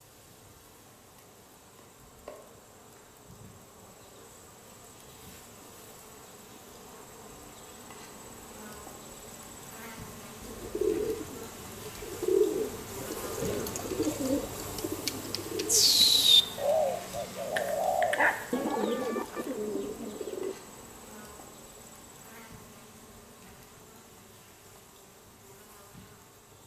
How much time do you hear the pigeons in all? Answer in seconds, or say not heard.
10 s.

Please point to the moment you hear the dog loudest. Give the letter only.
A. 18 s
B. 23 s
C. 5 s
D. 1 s
A.